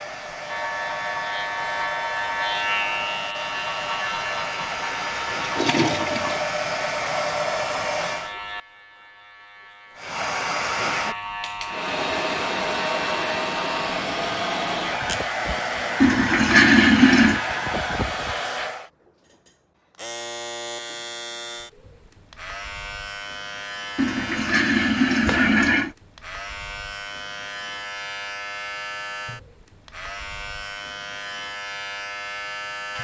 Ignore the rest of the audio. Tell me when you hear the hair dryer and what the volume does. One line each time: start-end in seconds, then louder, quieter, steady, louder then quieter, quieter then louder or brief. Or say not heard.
0.0-8.3 louder
9.9-18.9 steady.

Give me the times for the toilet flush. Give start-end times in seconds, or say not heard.
5.4-6.4, 16.0-17.4, 23.9-25.9.